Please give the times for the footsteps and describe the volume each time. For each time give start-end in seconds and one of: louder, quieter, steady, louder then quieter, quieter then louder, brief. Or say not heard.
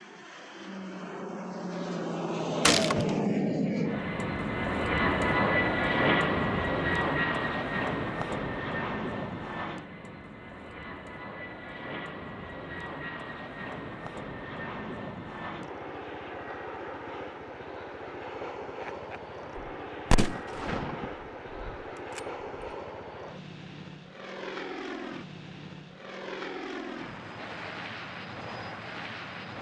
not heard.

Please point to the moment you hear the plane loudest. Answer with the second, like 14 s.
6 s.